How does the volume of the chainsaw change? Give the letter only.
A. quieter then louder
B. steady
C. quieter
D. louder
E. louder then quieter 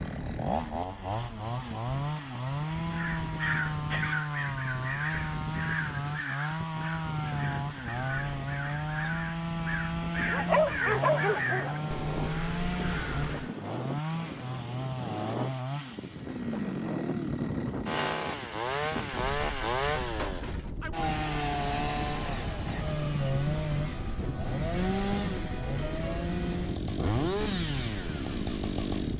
B.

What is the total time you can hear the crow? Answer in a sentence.
You can hear the crow for 11 seconds altogether.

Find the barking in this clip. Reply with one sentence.
You can hear the barking from 10.3 to 11.8 s.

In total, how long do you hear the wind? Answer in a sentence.
The wind can be heard for 29 seconds in total.